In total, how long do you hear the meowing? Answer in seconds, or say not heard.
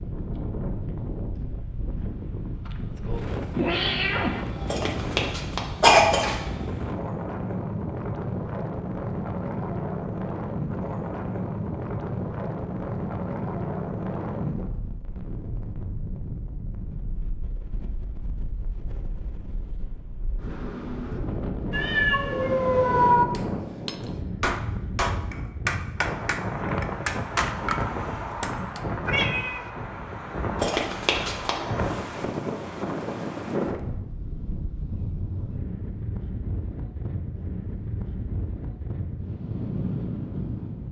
3 s.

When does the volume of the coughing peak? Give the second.
6 s.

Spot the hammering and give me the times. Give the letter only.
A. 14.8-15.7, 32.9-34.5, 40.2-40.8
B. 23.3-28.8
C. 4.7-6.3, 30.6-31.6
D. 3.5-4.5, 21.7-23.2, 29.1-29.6
B.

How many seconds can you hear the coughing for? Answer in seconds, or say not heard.
3 s.